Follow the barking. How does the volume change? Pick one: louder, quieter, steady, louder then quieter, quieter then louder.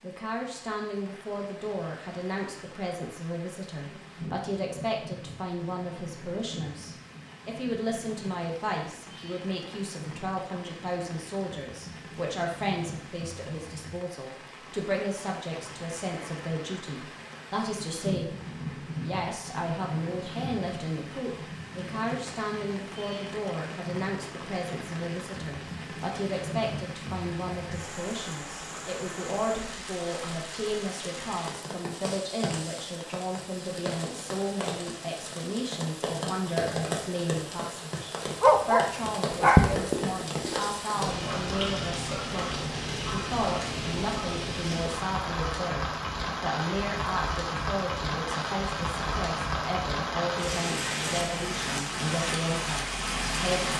quieter.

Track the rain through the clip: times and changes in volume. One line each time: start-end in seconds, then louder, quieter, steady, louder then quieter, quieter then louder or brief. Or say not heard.
0.0-53.7 louder.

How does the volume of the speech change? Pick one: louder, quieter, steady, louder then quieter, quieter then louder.
steady.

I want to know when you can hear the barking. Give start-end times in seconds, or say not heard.
38.4-44.6.